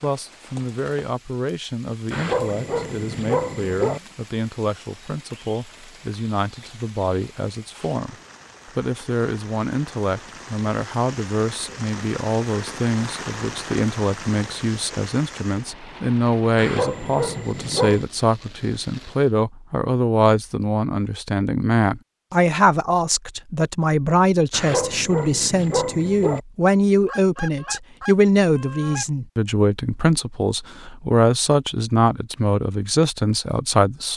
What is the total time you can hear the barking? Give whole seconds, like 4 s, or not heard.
5 s.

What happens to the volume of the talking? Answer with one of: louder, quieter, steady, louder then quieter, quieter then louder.
louder.